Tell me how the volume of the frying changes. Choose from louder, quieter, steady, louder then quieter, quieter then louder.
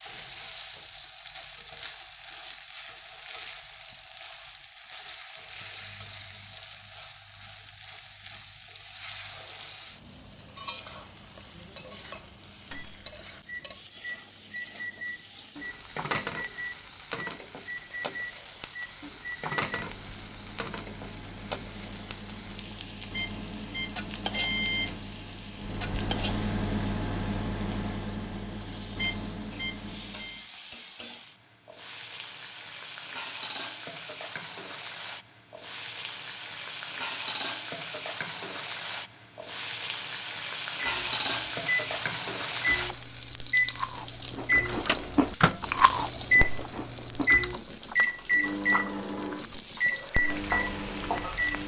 louder.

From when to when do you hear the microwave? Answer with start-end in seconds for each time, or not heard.
12.7-30.4, 40.8-51.6.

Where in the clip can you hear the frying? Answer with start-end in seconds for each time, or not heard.
0.0-51.6.